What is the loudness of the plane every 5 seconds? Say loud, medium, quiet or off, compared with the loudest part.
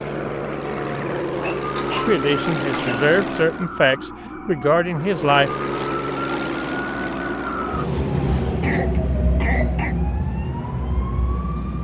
loud, loud, quiet.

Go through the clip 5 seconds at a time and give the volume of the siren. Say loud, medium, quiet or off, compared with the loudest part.
medium, loud, loud.